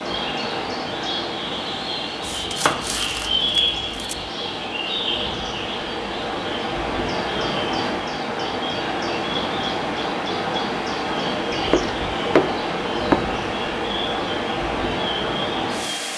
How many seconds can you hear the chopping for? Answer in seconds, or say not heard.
4 s.